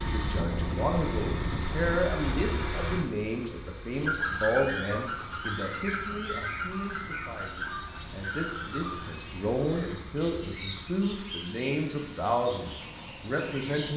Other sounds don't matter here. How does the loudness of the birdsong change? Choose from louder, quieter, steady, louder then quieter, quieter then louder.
quieter.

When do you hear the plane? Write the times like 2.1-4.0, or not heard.
0.0-13.9.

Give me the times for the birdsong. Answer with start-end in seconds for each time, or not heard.
3.9-13.9.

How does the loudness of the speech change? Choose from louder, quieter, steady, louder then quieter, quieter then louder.
quieter then louder.